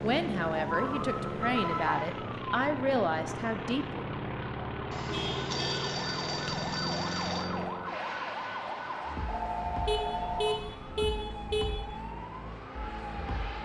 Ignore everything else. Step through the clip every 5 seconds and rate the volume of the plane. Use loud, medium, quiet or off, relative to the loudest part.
loud, loud, medium.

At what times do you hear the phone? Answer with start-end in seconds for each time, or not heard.
0.7-2.0, 4.9-7.5, 9.2-10.7.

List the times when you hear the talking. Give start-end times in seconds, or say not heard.
0.0-4.0.